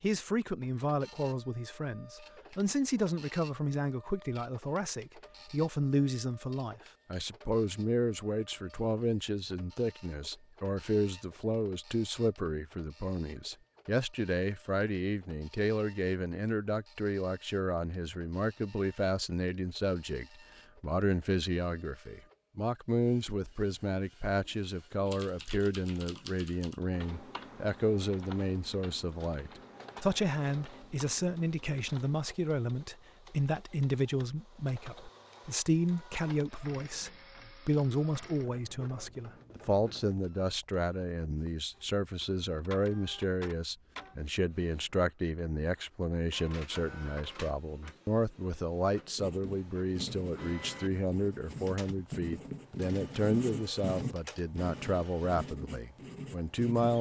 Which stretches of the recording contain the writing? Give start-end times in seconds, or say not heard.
49.1-56.9.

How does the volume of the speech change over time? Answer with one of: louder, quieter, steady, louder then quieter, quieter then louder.
steady.